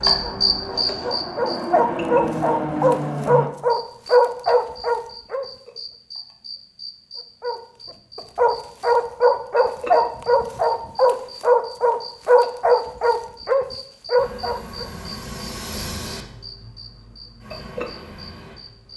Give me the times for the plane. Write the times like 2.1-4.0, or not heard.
0.0-3.5, 14.2-18.9.